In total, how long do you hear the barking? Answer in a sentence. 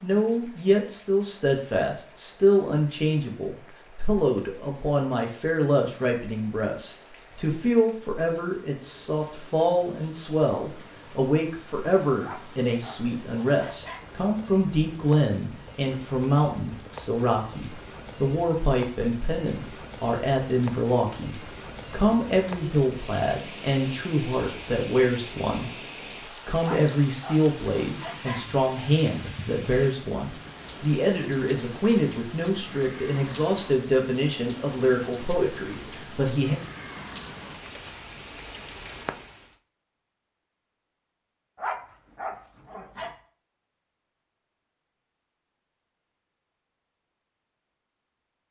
The barking can be heard for 5 seconds in total.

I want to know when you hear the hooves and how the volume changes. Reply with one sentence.
The hooves can't be heard in this clip.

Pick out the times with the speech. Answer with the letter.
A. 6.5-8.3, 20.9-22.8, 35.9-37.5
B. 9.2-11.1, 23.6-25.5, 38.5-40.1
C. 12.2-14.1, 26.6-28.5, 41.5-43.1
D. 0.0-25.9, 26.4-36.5
D.